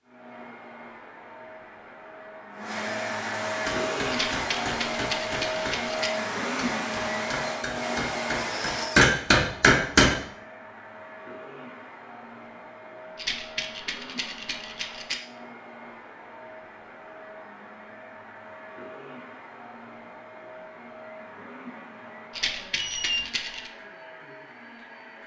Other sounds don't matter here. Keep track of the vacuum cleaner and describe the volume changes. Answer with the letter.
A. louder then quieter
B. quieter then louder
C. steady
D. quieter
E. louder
D.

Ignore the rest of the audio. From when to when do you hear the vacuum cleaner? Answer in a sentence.
The vacuum cleaner can be heard from 0.0 to 25.2 s.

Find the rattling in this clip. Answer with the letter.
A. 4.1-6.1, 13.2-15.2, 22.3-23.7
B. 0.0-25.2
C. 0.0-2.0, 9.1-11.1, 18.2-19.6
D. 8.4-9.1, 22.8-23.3
A.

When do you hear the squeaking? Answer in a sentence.
You can hear the squeaking from 8.4 to 9.1 s and from 22.8 to 23.3 s.